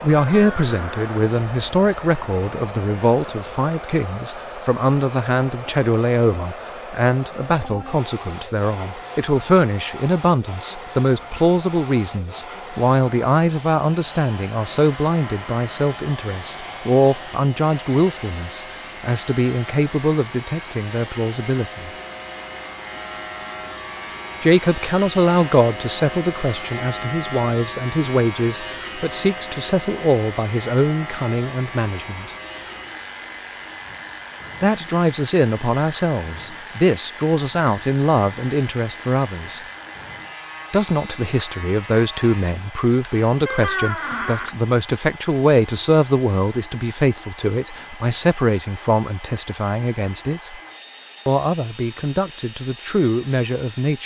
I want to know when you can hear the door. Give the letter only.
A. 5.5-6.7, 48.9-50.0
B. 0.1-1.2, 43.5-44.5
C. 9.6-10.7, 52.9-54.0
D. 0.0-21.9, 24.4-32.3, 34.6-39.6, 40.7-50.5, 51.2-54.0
B.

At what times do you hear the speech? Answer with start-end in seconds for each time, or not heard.
0.0-21.9, 24.4-32.3, 34.6-39.6, 40.7-50.5, 51.2-54.0.